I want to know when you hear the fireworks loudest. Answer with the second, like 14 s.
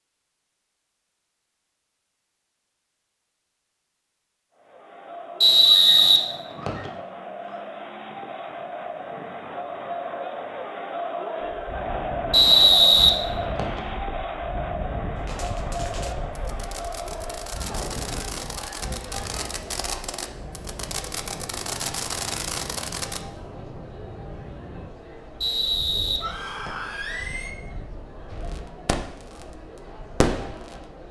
30 s.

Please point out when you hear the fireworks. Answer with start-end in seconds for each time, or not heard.
15.2-23.2, 28.3-30.9.